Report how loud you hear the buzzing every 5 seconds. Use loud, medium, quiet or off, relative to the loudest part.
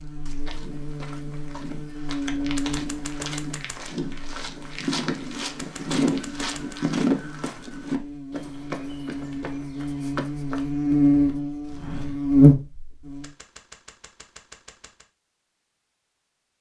quiet, quiet, loud, off.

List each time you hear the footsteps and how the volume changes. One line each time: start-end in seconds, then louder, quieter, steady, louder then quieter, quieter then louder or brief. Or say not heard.
0.1-12.2 louder then quieter.